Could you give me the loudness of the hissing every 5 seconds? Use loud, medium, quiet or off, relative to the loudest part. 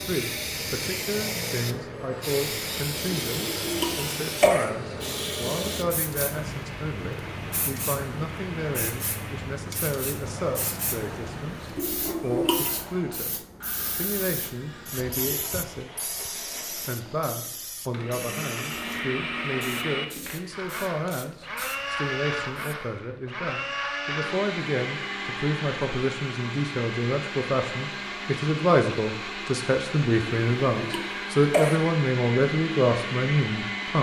loud, loud, medium, medium, quiet, off, off.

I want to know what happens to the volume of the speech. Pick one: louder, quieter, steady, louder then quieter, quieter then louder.
louder.